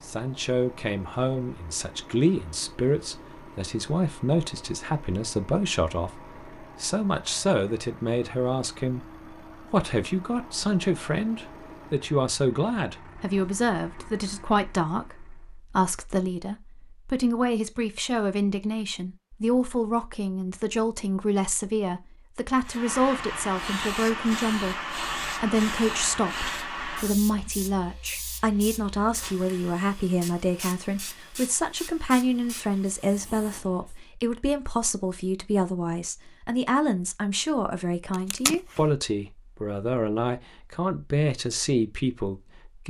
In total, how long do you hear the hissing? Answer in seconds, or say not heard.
11 s.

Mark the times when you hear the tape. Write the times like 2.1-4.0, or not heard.
38.1-38.8.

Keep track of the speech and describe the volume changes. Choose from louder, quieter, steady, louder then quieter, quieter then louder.
steady.